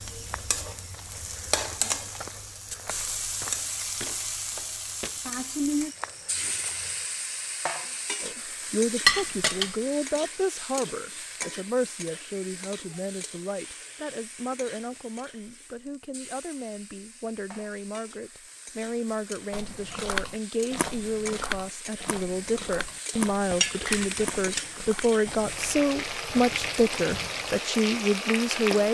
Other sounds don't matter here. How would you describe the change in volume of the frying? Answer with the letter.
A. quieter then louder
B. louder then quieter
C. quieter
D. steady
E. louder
A.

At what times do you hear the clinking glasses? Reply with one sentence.
The clinking glasses can be heard from 9.1 to 9.8 s and from 23.5 to 24.6 s.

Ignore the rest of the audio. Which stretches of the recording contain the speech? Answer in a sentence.
The speech can be heard from 8.2 to 28.9 s.